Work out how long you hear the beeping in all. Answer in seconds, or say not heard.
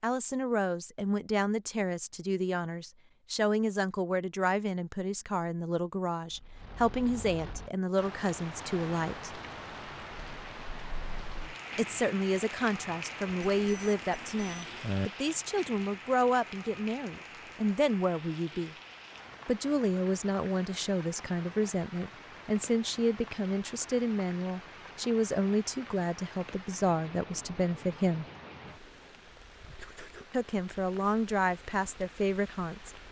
2 s.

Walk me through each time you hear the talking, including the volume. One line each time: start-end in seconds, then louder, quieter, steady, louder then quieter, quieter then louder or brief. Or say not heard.
0.0-9.3 steady
11.8-18.8 steady
19.4-28.2 steady
30.3-33.0 brief.